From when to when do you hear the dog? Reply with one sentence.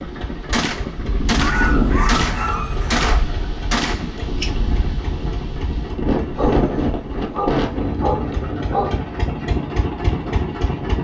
You can hear the dog from 1.4 to 3.2 s and from 6.3 to 9.0 s.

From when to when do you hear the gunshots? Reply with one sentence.
You can hear the gunshots from 0.5 to 4.1 s.